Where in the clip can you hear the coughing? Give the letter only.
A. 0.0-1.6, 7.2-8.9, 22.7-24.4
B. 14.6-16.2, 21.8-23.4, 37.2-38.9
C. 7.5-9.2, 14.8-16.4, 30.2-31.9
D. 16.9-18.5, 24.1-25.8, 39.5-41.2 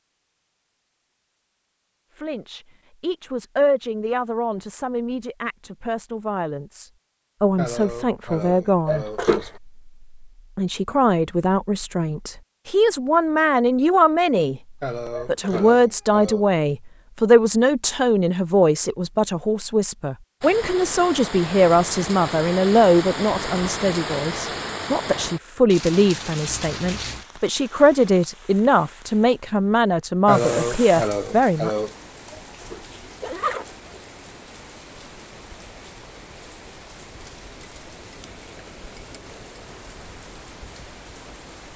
C.